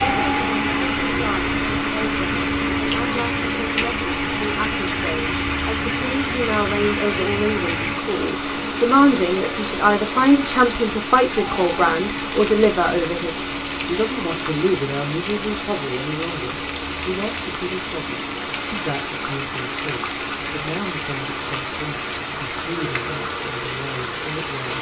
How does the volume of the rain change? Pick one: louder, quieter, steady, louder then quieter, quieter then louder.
steady.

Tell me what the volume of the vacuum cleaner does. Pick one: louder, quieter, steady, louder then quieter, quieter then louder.
quieter.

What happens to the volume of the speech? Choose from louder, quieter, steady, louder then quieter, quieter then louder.
louder then quieter.